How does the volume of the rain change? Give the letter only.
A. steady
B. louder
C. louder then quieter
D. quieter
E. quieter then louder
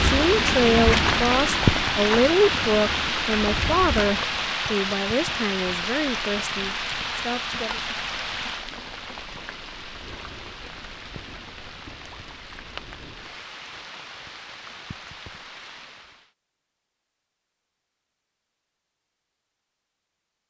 D.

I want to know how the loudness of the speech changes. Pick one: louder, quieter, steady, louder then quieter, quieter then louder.
quieter.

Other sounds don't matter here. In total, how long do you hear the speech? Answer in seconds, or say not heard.
8 s.